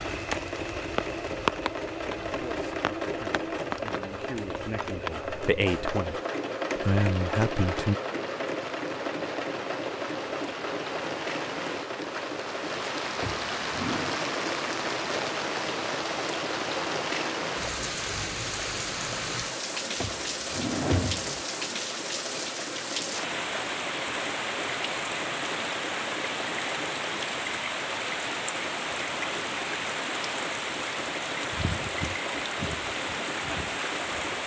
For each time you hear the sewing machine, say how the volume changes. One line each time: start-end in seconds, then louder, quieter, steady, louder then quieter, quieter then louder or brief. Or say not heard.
0.0-34.4 quieter.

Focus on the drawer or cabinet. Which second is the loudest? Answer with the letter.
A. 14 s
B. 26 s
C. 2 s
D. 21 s
D.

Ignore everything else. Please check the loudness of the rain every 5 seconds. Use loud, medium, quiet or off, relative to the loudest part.
loud, medium, loud, loud, loud, loud, loud.